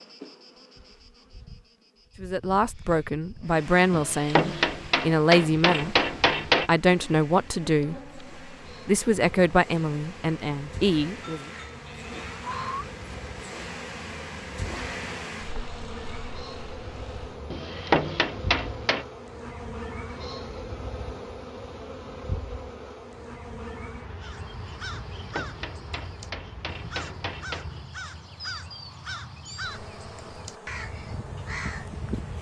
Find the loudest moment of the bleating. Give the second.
13 s.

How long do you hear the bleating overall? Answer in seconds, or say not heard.
2 s.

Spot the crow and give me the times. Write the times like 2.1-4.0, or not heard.
24.2-32.3.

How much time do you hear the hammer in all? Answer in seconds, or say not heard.
7 s.